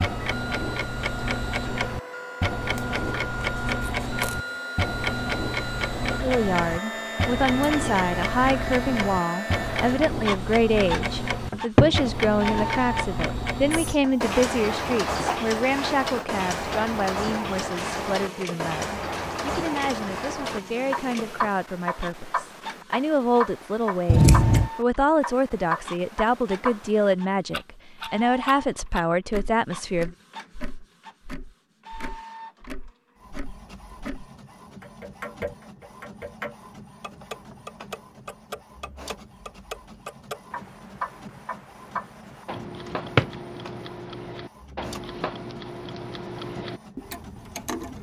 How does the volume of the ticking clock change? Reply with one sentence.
The volume of the ticking clock goes down.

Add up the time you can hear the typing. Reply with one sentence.
The typing can't be heard in this clip.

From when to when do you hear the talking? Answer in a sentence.
The talking can be heard from 6.2 to 30.1 s.